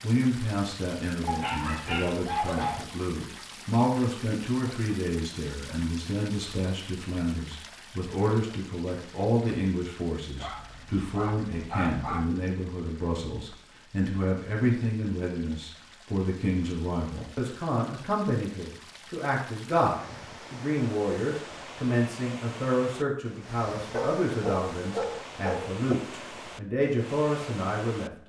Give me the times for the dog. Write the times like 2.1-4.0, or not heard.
1.2-2.9, 10.4-12.3, 23.9-25.9.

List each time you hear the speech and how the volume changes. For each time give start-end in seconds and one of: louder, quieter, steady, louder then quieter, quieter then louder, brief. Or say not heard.
0.0-28.2 steady.